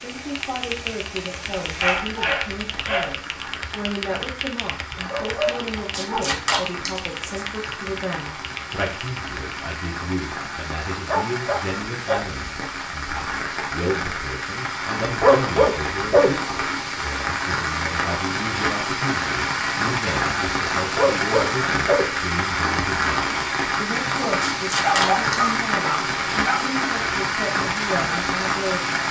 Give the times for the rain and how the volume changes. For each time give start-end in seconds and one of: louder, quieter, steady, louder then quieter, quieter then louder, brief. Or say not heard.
0.0-29.0 louder.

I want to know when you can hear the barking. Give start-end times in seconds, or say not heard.
1.6-3.1, 4.9-6.4, 11.1-12.2, 15.2-16.4, 20.9-22.1, 24.8-26.6.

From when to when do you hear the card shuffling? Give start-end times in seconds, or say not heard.
5.9-7.5, 24.4-25.2.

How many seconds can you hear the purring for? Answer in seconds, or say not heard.
not heard.